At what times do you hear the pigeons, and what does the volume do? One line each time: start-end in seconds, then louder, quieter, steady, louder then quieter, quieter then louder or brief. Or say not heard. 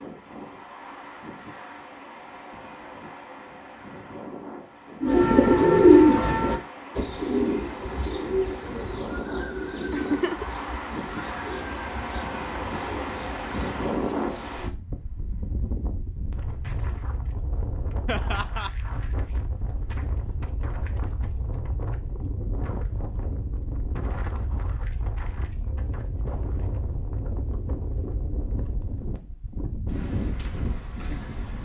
5.0-14.8 quieter.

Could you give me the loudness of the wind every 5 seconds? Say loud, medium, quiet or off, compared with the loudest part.
medium, medium, loud, medium, medium, medium, loud.